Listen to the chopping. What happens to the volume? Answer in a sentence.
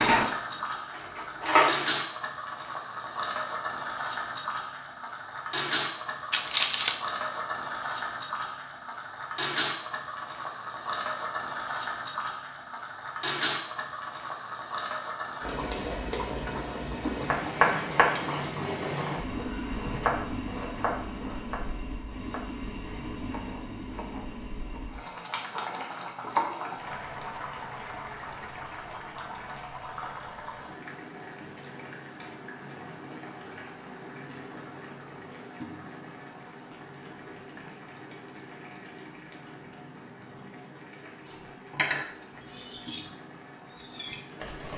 The loudness of the chopping goes down, then up.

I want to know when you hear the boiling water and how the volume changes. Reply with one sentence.
The boiling water can be heard from 0.1 to 44.7 s, getting quieter.